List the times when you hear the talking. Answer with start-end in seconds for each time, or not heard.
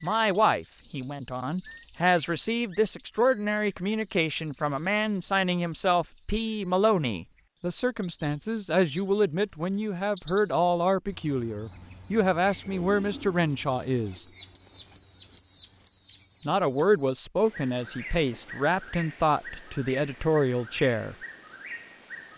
0.0-14.2, 16.4-21.1.